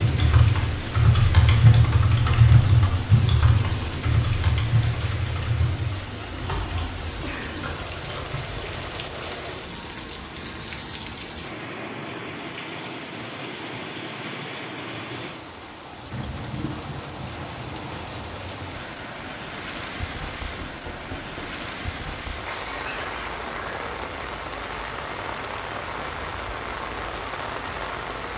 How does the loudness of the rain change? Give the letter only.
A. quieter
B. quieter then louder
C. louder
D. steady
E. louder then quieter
D.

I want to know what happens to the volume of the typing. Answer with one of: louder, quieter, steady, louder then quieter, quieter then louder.
quieter.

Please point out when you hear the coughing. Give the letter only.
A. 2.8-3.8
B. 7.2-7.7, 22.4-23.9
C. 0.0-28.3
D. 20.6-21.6
B.